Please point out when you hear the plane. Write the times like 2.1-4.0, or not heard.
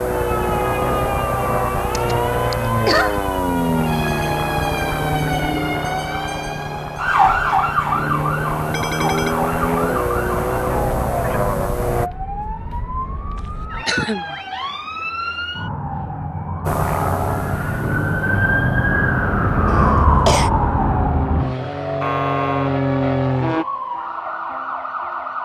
0.0-12.1, 16.6-23.6.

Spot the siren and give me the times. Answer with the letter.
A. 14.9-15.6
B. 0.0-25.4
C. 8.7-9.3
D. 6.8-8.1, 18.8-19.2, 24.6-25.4
B.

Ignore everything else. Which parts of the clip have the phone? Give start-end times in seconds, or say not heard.
8.7-9.3.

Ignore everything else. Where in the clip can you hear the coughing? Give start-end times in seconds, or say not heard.
1.9-3.2, 13.8-14.3, 19.6-20.5.